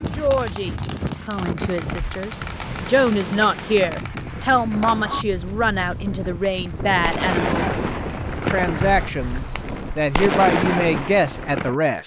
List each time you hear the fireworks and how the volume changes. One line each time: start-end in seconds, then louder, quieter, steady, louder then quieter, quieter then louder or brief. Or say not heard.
0.0-11.8 louder.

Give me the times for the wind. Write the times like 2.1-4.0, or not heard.
0.0-9.9.